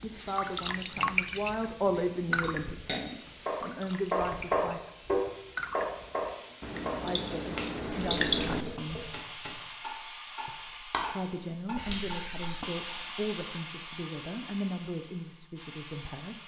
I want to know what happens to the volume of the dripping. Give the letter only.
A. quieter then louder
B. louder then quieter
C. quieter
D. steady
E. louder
A.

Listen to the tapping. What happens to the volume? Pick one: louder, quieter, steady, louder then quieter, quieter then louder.
quieter.